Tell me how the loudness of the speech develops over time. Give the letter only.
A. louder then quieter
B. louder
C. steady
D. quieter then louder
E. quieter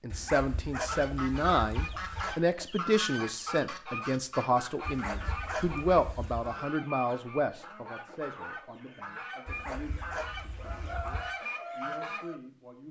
E.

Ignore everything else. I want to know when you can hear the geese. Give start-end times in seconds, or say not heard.
0.8-12.4.